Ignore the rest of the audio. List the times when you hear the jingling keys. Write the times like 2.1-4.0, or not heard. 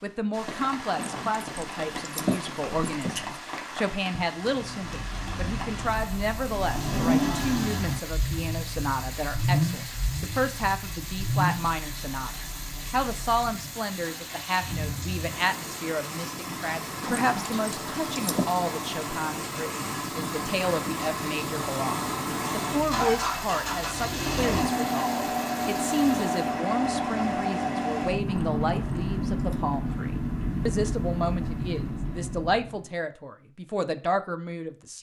0.9-3.4, 17.0-18.4, 28.2-29.7.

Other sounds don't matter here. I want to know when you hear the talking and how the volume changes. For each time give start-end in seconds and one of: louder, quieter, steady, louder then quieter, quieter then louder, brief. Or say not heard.
0.0-34.9 steady.